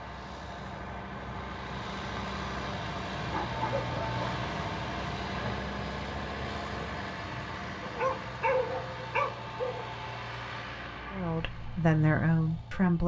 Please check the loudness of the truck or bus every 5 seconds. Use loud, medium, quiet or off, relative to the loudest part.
loud, loud, medium.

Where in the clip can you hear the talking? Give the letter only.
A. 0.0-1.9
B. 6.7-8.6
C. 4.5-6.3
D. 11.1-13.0
D.